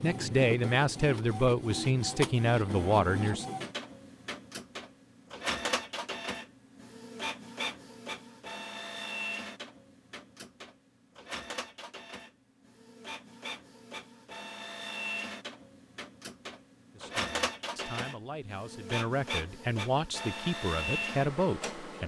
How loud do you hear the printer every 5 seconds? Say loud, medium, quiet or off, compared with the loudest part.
loud, loud, medium, loud, loud.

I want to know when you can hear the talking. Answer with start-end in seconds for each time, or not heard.
0.0-3.5, 16.9-22.0.